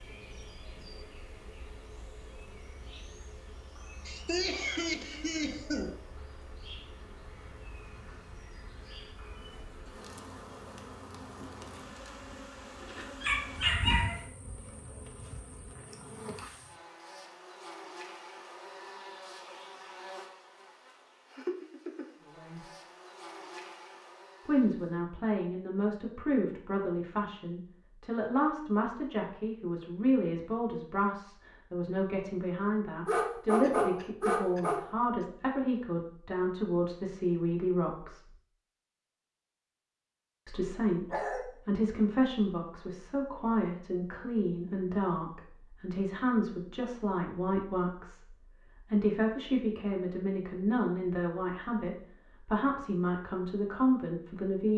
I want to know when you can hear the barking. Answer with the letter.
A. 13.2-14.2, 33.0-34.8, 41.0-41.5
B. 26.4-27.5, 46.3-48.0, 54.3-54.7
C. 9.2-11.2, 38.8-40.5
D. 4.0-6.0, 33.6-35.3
A.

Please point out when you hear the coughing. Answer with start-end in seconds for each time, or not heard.
4.0-6.0, 33.6-35.3.